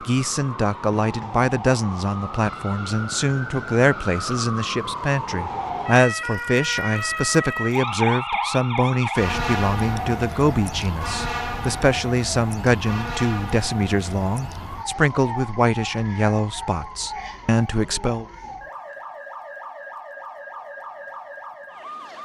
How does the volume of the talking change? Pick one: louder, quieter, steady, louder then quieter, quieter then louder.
steady.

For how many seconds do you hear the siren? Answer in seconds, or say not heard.
22 s.